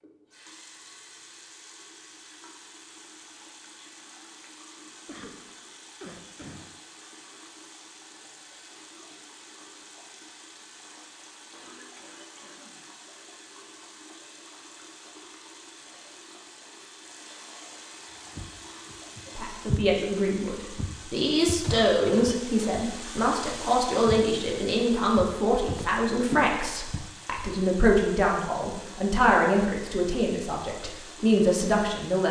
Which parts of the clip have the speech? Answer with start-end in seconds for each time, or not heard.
19.4-32.2.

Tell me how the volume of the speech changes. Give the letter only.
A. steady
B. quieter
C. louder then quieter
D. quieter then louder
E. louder
A.